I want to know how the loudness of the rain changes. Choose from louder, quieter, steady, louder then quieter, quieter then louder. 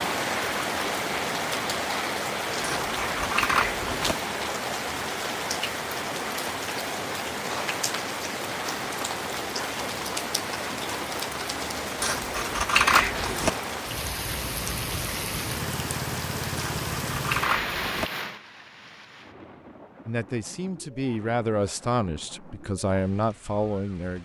quieter.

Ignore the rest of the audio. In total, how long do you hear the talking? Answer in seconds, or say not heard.
4 s.